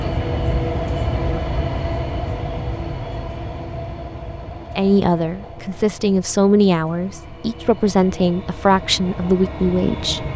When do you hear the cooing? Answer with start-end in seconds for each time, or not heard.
not heard.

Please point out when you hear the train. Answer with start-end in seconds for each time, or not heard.
0.0-10.3.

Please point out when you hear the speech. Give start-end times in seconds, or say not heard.
4.8-10.2.